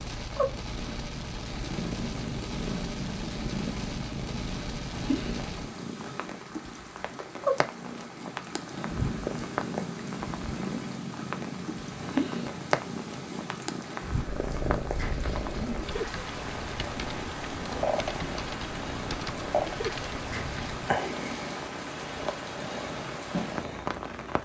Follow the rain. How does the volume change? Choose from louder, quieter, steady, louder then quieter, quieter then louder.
steady.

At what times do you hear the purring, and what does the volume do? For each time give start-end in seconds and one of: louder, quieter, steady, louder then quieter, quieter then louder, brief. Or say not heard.
0.1-24.4 steady.